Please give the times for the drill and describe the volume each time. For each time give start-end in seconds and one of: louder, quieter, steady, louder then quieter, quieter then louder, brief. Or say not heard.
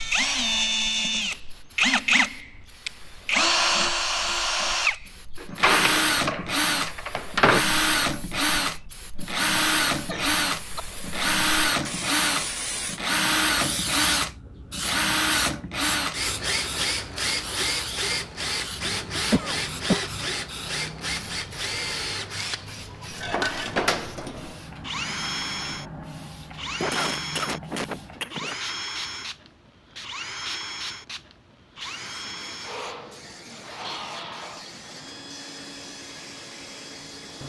0.0-37.4 quieter.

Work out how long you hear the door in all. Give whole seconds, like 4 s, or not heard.
4 s.